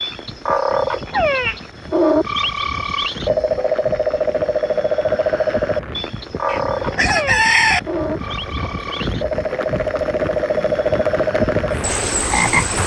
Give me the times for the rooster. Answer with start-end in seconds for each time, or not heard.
6.5-7.8.